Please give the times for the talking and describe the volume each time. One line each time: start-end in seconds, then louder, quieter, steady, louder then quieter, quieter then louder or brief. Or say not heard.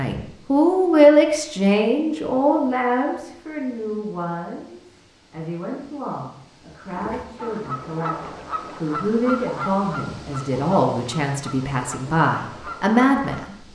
0.0-13.7 quieter then louder.